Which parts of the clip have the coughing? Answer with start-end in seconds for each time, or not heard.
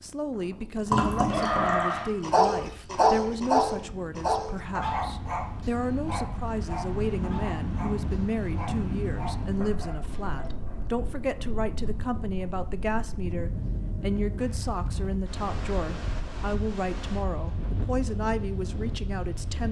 not heard.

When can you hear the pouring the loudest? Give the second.
1 s.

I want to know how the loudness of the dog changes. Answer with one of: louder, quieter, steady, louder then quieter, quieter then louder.
quieter.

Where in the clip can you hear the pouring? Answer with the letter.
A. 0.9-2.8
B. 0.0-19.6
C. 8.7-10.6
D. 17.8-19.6
A.